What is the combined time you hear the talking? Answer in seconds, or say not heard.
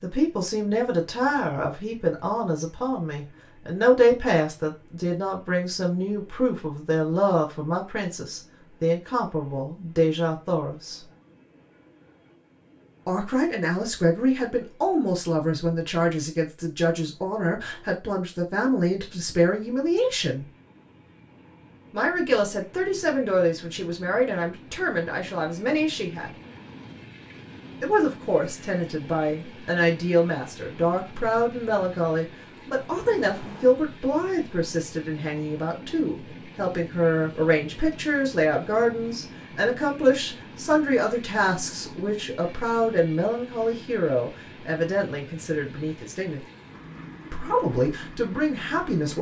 43 s.